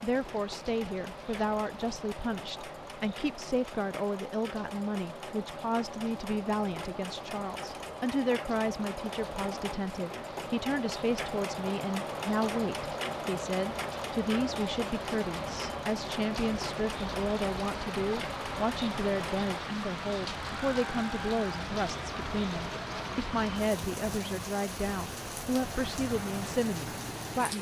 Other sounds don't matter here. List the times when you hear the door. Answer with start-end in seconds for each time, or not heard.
not heard.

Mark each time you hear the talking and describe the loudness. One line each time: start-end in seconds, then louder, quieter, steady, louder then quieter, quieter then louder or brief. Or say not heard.
0.0-27.5 steady.